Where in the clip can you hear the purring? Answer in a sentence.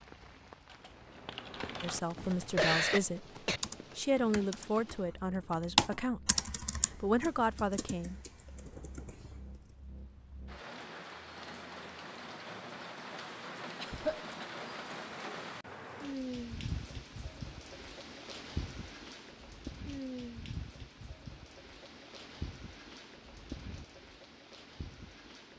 The purring can't be heard in this clip.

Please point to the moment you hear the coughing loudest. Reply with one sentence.
The volume of the coughing peaks at 3 seconds.